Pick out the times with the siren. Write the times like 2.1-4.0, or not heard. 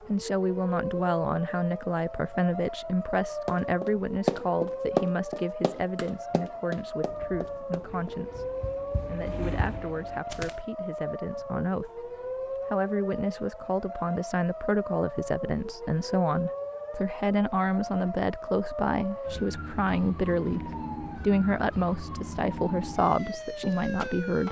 0.0-24.4.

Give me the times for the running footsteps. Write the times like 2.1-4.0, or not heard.
3.5-10.6.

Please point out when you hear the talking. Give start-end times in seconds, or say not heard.
0.1-12.1, 12.7-24.4.